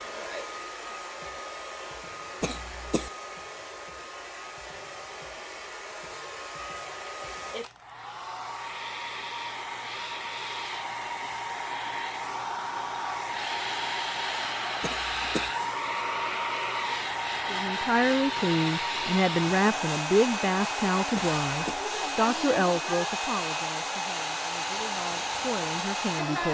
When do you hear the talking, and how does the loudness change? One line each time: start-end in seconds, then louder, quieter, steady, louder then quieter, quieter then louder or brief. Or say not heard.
17.5-26.4 quieter.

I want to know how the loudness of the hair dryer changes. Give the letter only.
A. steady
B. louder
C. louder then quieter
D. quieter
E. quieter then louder
B.